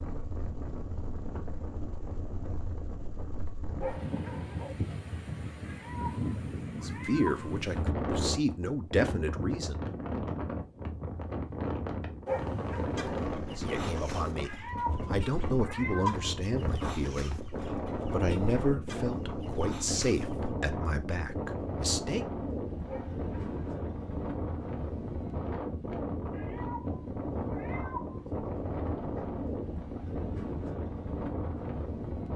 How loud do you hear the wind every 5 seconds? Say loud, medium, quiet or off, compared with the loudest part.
medium, loud, loud, loud, loud, loud, loud.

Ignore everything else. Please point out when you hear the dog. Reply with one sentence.
The dog can be heard from 3.8 to 4.8 s, from 12.2 to 13.2 s and from 22.9 to 23.6 s.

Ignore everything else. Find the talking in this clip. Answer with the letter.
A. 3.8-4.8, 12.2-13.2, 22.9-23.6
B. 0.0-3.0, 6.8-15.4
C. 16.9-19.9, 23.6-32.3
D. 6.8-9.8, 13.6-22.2
D.